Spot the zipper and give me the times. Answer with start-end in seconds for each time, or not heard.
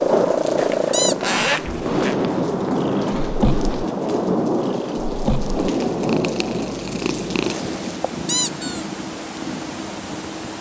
0.6-2.1.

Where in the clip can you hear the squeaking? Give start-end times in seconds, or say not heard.
0.9-1.4, 8.2-8.8.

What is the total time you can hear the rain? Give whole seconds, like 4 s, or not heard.
8 s.